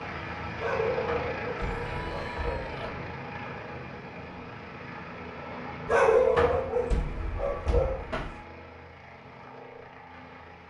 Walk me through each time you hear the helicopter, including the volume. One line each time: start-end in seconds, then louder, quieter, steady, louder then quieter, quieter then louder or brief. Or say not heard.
0.0-10.6 quieter.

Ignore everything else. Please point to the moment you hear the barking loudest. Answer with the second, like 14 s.
6 s.